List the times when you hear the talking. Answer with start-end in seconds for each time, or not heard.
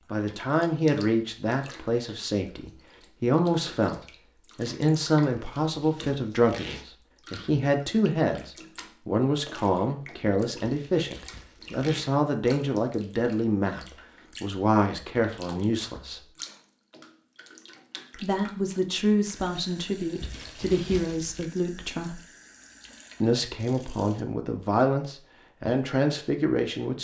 0.1-16.3, 18.1-22.2, 23.2-27.0.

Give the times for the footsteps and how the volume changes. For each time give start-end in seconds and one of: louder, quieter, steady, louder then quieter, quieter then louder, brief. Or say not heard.
not heard.